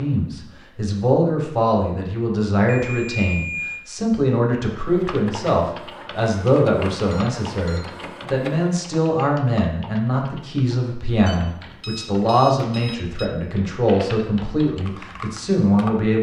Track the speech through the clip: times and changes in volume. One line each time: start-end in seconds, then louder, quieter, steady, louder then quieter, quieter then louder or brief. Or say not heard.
0.0-16.1 steady.